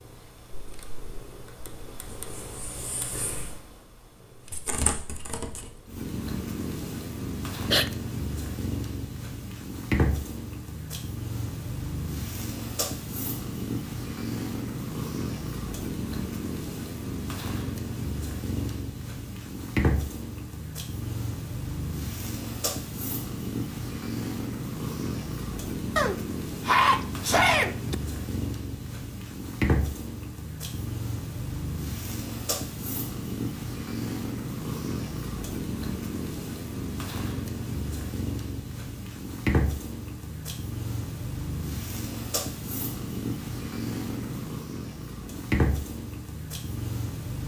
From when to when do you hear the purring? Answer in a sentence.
The purring can be heard from 0.0 to 47.4 s.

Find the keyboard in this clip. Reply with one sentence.
The keyboard can't be heard in this clip.